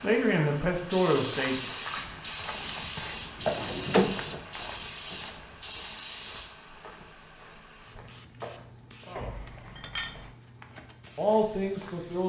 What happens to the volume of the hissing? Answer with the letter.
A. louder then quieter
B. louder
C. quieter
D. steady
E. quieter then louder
C.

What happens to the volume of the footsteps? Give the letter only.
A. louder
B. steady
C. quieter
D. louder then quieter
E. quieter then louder
C.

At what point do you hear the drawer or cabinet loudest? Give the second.
4 s.